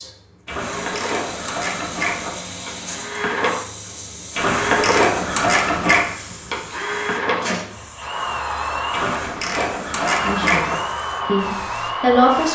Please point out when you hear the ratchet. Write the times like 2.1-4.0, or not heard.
0.5-2.3, 4.3-6.2, 8.9-10.8.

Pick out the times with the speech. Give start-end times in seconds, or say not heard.
10.2-12.4.